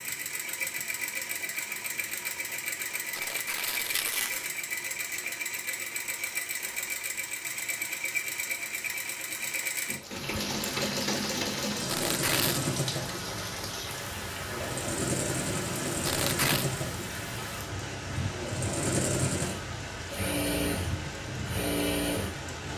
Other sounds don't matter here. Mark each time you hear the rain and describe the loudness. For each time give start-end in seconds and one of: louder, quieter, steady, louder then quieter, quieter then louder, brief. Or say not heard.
9.9-22.7 steady.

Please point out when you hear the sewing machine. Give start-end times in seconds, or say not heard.
0.0-22.4.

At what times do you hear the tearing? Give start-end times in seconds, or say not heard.
3.1-4.5, 11.8-12.7, 16.1-16.6.